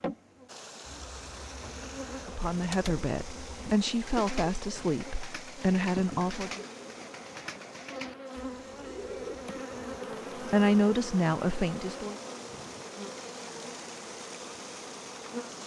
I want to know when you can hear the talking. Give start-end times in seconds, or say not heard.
2.2-6.6, 10.3-12.2.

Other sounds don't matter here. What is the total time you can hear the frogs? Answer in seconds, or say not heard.
not heard.